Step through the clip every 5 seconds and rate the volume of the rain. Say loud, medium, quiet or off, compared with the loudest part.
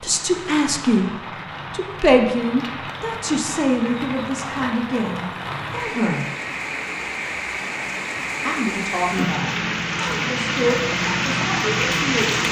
medium, medium, loud.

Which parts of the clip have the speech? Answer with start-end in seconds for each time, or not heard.
0.0-1.1, 1.7-6.3, 8.4-12.4.